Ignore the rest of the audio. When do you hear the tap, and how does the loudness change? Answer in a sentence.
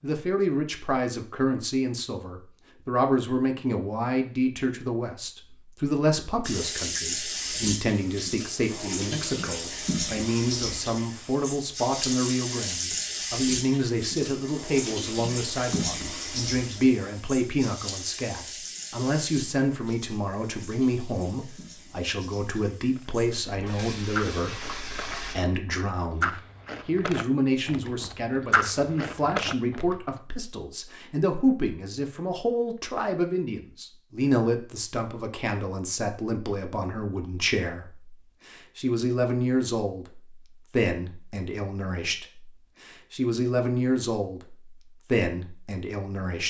The tap can be heard from 6.4 to 25.4 s, getting quieter.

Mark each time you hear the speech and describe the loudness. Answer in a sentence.
You can hear the speech from 0.0 to 46.4 s, at a steady volume.